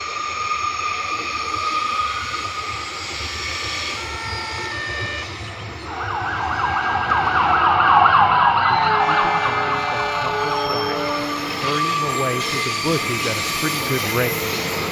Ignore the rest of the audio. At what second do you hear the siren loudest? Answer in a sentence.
The loudest moment of the siren is at 8 seconds.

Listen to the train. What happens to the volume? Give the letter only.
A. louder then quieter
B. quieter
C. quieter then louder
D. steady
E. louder
C.